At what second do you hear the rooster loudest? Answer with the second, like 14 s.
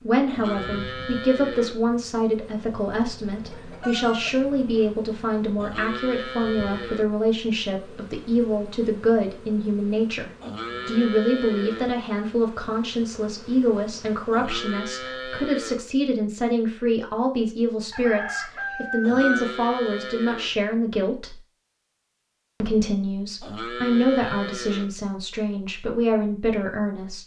19 s.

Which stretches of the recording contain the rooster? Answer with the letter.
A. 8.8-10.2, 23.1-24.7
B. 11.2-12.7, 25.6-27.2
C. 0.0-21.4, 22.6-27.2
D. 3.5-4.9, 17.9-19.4
D.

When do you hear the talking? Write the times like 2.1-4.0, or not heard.
0.0-21.4, 22.6-27.2.